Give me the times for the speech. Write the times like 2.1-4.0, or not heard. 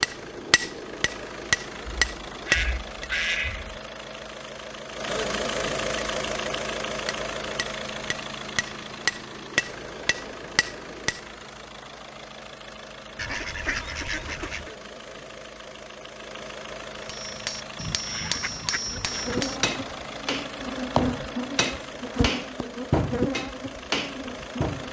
not heard.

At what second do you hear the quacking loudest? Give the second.
3 s.